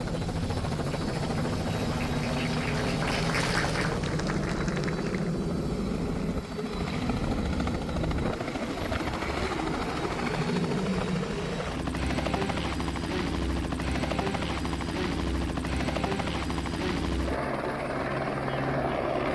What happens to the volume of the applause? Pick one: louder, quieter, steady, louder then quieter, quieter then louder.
louder then quieter.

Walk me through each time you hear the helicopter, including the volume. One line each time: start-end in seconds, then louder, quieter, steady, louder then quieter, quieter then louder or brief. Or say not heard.
0.0-19.3 steady.